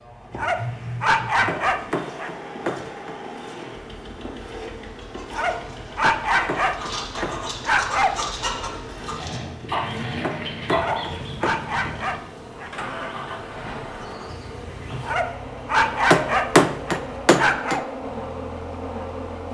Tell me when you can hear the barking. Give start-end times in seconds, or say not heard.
0.3-2.3, 5.3-8.1, 10.7-12.7, 15.0-17.8.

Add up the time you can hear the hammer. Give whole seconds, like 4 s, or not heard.
7 s.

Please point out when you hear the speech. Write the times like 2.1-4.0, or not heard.
not heard.